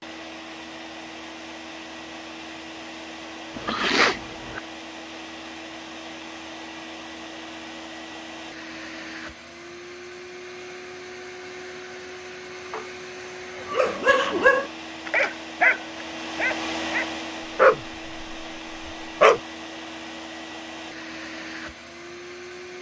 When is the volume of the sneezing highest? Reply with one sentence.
The loudest moment of the sneezing is at 4 seconds.